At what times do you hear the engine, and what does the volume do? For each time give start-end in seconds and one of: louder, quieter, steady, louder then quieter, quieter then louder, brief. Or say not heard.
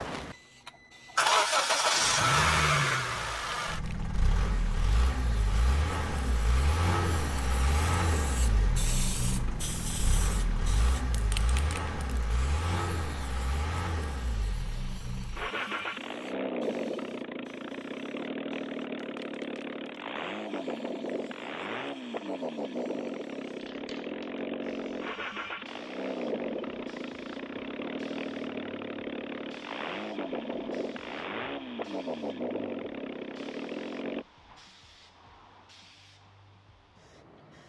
0.0-34.2 quieter.